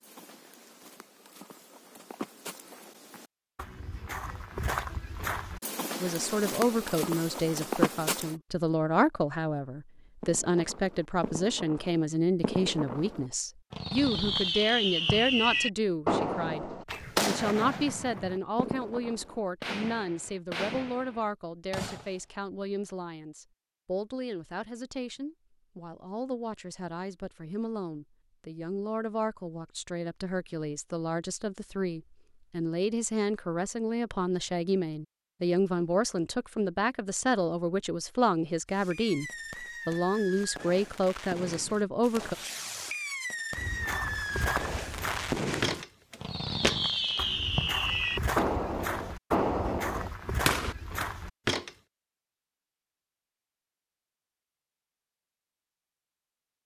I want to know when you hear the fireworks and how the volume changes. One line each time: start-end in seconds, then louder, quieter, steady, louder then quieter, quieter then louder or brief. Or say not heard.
10.2-22.2 louder then quieter
38.7-51.1 louder.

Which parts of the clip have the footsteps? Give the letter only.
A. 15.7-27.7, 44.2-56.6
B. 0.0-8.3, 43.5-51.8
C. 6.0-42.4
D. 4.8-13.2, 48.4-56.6
B.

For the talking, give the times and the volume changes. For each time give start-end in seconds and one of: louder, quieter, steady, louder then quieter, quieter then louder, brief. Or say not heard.
6.0-42.4 quieter then louder.